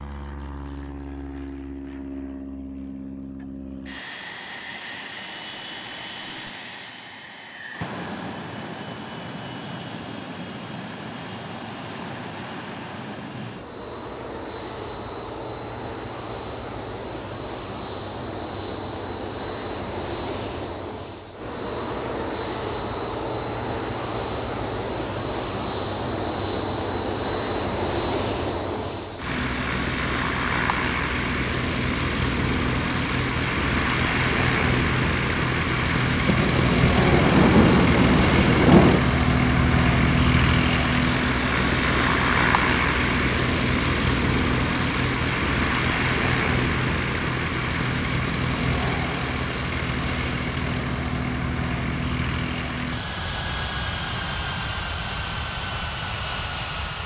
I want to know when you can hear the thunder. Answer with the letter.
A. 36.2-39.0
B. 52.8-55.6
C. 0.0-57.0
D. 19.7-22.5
A.